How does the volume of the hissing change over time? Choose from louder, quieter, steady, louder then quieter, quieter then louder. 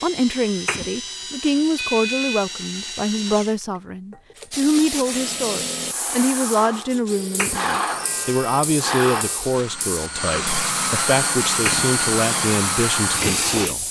steady.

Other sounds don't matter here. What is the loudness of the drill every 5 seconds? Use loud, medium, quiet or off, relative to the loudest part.
medium, medium, loud.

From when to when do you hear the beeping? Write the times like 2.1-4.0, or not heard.
1.8-2.5, 7.9-9.4.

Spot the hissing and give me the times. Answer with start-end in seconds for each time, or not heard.
4.5-13.8.